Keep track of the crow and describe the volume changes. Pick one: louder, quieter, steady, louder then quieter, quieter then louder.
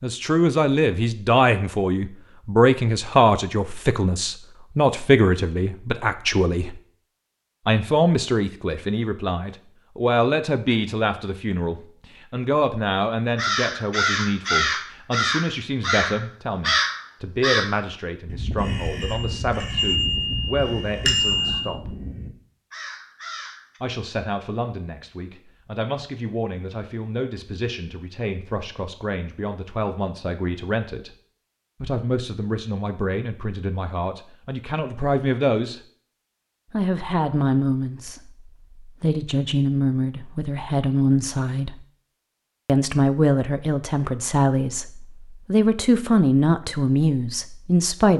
quieter.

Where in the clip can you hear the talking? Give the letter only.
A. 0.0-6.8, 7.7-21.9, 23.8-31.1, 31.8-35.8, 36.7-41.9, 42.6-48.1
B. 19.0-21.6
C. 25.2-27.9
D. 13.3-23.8
A.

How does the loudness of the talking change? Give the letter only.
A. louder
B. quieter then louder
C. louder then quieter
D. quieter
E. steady
B.